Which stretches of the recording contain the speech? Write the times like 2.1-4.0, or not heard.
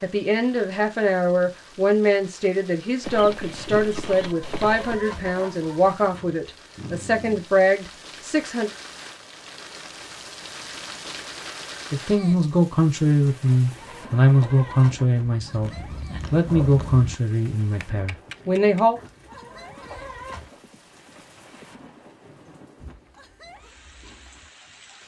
0.0-8.7, 11.9-15.7, 16.3-18.9.